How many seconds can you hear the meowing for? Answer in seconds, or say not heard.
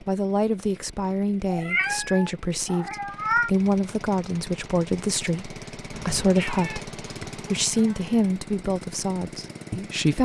4 s.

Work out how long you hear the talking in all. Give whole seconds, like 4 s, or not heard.
10 s.